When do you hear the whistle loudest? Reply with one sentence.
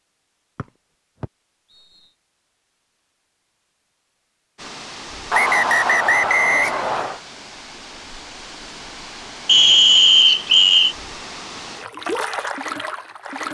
The volume of the whistle peaks at 10 seconds.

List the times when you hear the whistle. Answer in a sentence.
The whistle can be heard from 0.6 to 2.1 s, from 5.3 to 7.2 s and from 9.4 to 10.9 s.